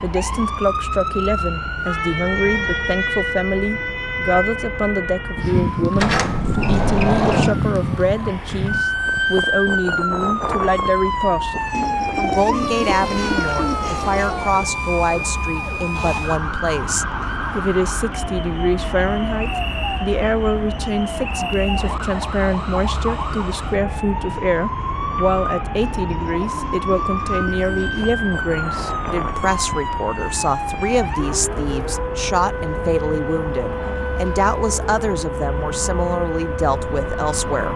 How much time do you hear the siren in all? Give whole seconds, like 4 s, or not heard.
38 s.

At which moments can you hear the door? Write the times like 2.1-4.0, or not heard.
6.0-7.5.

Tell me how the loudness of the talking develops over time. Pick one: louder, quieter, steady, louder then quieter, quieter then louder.
steady.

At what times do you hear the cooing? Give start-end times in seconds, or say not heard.
11.7-14.3, 25.8-28.1.